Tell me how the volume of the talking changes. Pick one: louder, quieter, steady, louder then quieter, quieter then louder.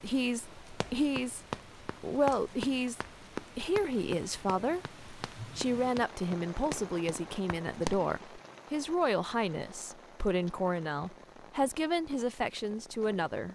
steady.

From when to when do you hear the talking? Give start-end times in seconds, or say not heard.
0.0-13.5.